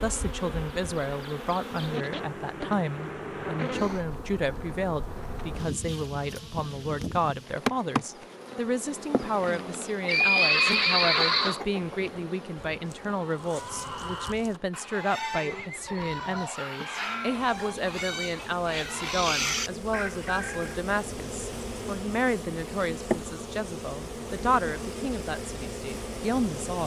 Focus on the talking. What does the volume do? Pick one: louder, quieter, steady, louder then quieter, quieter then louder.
steady.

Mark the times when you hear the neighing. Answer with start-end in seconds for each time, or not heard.
10.1-11.6, 15.0-16.5.